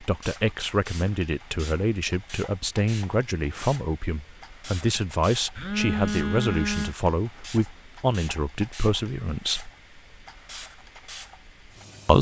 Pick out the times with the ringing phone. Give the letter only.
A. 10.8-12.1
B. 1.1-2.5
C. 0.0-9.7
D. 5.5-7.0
D.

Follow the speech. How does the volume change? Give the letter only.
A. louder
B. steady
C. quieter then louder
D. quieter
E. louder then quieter
B.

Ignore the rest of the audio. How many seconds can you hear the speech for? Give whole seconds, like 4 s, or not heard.
10 s.